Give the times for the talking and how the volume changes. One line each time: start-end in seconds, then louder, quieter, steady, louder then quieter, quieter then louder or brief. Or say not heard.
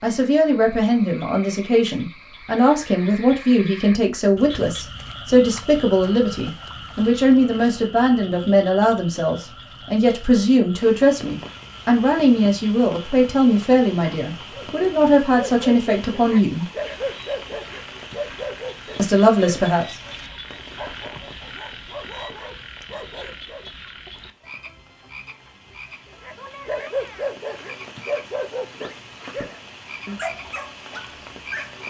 0.0-16.6 steady
18.9-20.0 brief.